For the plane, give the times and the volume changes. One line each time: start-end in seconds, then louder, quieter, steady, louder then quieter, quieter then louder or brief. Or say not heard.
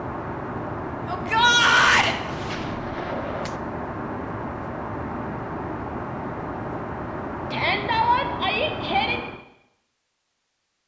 0.0-9.4 steady.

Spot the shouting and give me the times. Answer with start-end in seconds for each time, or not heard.
1.1-2.1, 7.5-9.2.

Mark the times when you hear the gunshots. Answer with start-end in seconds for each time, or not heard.
2.1-3.6.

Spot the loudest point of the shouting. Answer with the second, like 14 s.
2 s.